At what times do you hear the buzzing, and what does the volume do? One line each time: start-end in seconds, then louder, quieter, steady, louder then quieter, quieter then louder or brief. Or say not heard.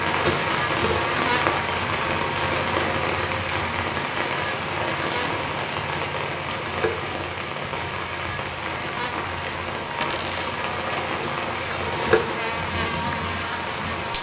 0.0-14.1 quieter then louder.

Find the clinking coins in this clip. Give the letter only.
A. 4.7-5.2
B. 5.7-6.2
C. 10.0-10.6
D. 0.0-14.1
C.